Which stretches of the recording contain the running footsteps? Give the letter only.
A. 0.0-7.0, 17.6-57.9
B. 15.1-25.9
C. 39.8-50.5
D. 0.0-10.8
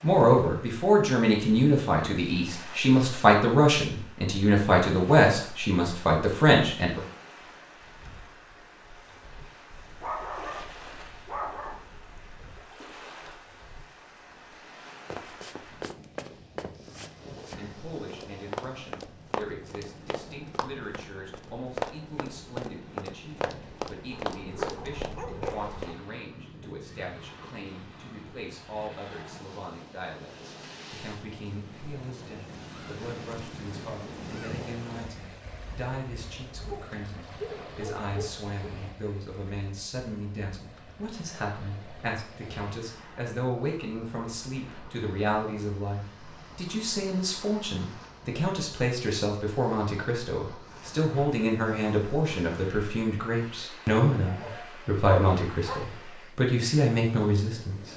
B.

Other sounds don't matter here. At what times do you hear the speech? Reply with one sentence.
The speech can be heard from 0.0 to 7.0 s and from 17.6 to 57.9 s.